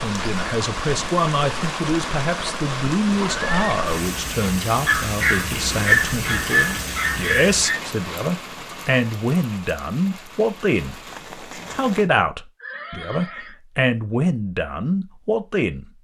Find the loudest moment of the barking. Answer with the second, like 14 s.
6 s.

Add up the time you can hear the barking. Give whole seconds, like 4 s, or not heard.
3 s.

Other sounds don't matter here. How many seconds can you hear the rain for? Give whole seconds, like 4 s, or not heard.
12 s.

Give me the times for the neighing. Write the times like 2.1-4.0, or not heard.
3.1-3.7, 12.6-13.6.